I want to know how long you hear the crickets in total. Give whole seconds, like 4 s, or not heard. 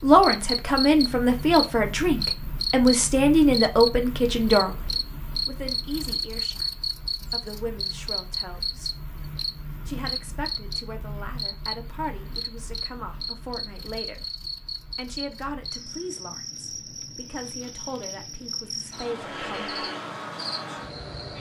21 s.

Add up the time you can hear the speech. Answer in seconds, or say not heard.
18 s.